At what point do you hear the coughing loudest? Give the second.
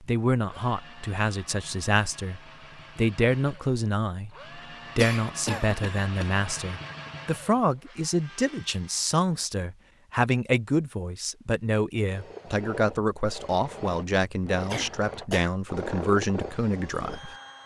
5 s.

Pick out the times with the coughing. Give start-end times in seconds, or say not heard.
5.0-6.3, 14.7-15.5.